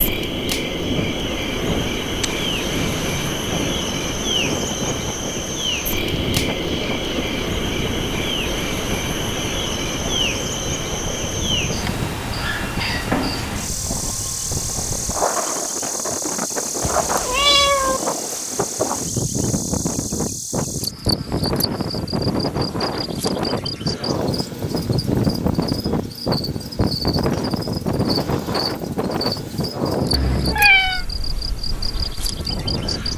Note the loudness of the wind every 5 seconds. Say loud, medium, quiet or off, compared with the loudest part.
medium, medium, medium, loud, loud, loud, medium.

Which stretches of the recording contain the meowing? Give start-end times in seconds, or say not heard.
2.2-3.4, 16.8-18.0, 30.1-31.1.